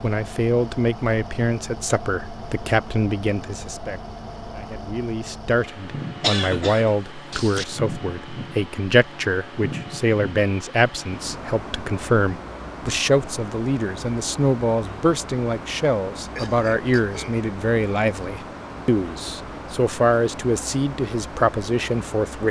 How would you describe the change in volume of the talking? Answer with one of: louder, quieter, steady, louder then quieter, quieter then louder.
steady.